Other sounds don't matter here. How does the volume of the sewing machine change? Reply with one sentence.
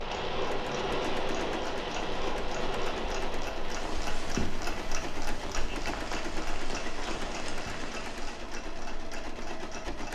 The volume of the sewing machine stays about the same.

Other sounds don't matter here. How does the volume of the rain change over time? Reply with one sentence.
The volume of the rain goes down.